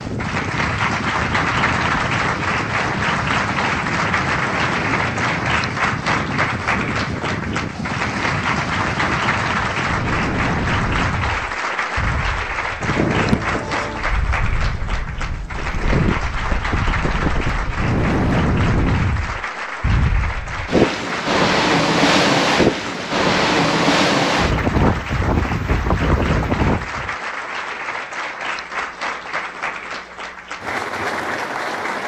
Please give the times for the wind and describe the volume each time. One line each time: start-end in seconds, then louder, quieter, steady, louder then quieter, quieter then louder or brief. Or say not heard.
0.0-27.1 louder.